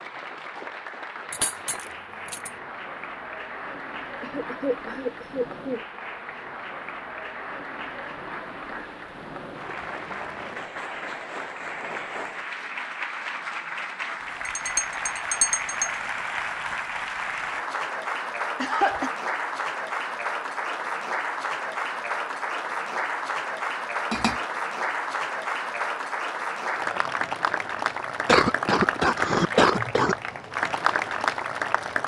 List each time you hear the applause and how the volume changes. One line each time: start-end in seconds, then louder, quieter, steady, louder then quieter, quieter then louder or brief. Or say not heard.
0.0-32.0 louder.